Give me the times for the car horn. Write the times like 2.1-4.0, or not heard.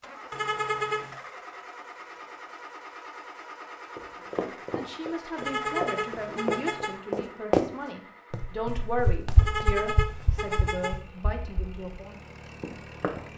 0.3-1.1, 5.3-7.0, 9.3-11.0.